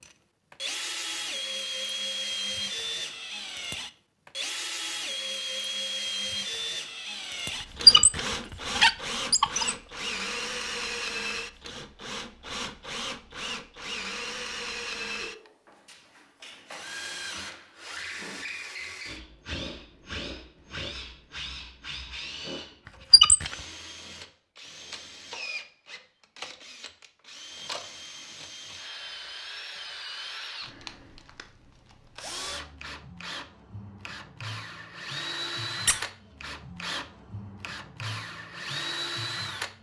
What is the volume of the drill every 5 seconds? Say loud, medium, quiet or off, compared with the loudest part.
loud, loud, loud, medium, medium, medium, medium, loud.